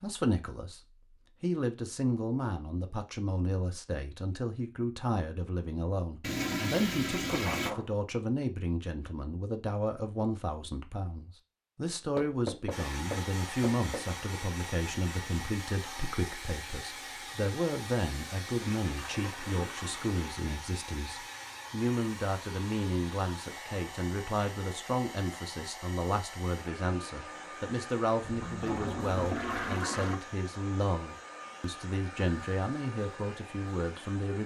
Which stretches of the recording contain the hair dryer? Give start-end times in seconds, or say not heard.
12.7-34.4.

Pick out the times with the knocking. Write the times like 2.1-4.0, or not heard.
7.2-7.9, 12.2-14.1, 28.2-29.8.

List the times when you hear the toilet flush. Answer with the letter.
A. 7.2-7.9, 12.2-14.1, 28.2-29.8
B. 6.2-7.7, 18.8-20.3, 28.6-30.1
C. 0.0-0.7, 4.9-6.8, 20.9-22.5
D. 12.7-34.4
B.